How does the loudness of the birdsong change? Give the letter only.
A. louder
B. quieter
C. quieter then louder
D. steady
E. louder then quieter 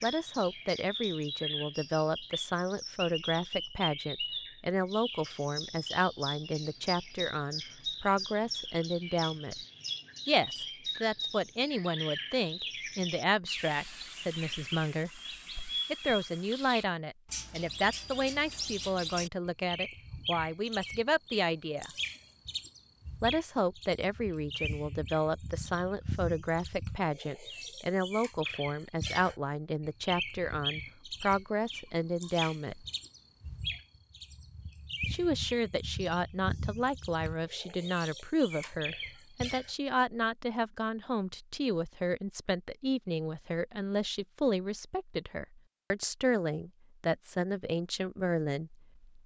D.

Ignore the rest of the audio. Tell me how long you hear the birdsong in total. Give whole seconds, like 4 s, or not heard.
40 s.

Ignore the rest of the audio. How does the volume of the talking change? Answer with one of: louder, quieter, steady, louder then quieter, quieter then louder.
steady.